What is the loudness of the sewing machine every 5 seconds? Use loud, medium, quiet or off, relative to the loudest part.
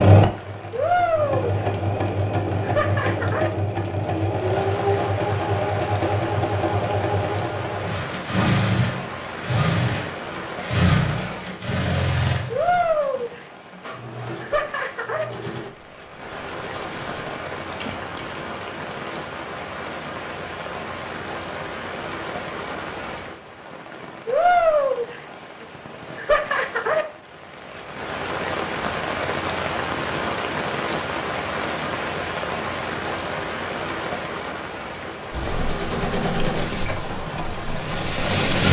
loud, loud, loud, quiet, off, off, off, loud.